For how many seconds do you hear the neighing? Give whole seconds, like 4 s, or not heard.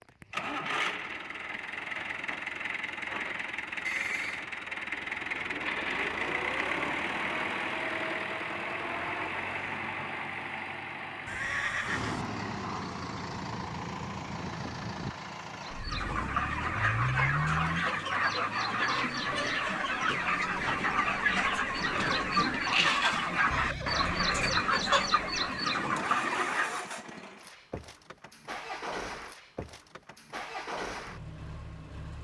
3 s.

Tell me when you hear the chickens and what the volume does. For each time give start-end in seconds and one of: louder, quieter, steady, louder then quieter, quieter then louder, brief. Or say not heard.
15.6-27.0 steady.